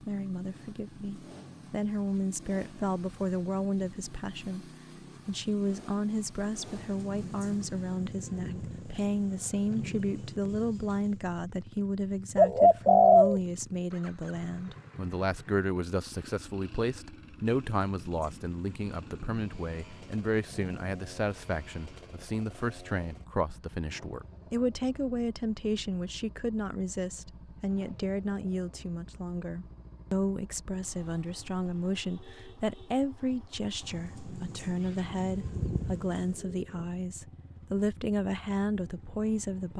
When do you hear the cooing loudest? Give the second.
13 s.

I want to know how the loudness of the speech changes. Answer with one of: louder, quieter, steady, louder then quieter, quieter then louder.
steady.